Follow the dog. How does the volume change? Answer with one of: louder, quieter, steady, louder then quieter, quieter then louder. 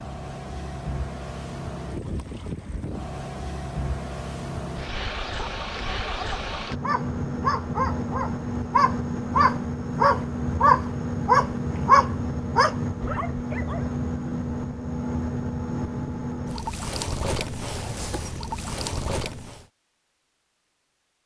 louder then quieter.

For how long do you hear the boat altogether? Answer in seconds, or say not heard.
20 s.